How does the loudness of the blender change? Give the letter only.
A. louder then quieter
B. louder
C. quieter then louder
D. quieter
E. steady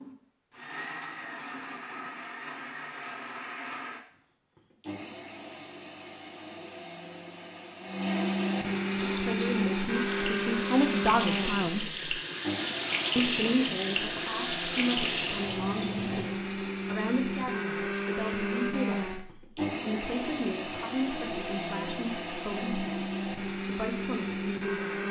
B.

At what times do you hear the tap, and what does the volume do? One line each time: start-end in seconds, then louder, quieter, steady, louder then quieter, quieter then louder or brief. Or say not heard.
8.9-16.3 louder.